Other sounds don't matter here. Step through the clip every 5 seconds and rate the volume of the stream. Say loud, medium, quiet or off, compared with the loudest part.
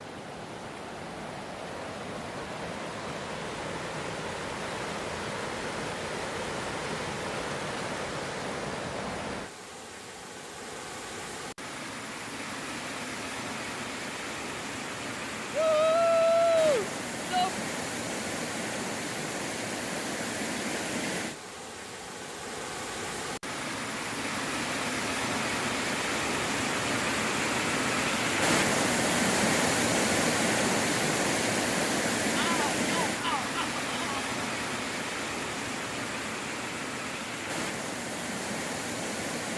medium, medium, medium, medium, medium, loud, loud, medium.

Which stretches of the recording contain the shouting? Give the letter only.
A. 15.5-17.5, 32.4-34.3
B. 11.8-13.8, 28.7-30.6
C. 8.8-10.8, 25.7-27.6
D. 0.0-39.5
A.